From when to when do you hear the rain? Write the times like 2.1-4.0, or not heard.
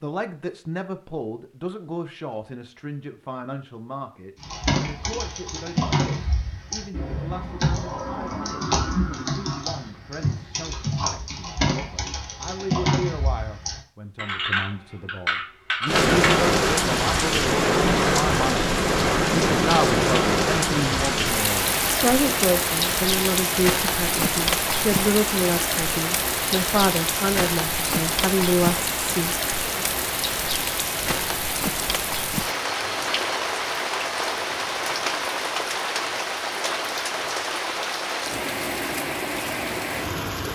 15.8-40.4.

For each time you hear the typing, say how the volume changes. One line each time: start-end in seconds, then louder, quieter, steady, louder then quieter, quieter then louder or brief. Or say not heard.
4.4-16.4 steady.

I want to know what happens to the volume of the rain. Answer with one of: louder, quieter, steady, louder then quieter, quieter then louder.
quieter.